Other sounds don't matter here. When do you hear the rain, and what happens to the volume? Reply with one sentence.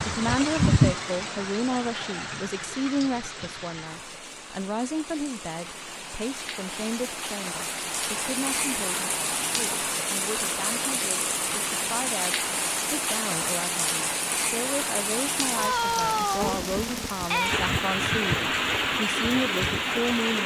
You can hear the rain from 0.0 to 20.4 s, getting quieter then louder.